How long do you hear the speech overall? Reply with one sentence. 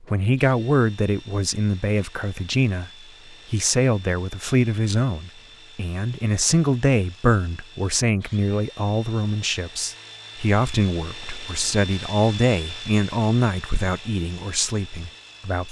You can hear the speech for 15 seconds altogether.